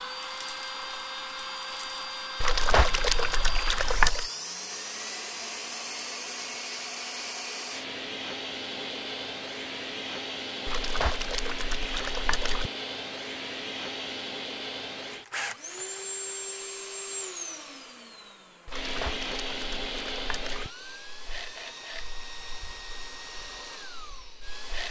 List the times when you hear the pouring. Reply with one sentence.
The pouring can be heard from 2.4 to 4.2 s, from 10.7 to 12.7 s and from 18.6 to 20.7 s.